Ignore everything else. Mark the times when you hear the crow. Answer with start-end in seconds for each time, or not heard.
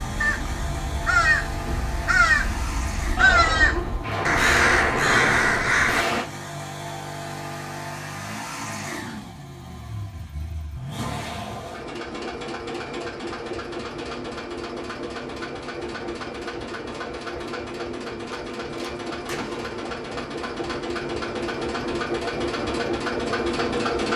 0.0-6.0.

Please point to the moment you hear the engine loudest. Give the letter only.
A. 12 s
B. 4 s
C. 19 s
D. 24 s
D.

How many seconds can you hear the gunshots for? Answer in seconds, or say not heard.
5 s.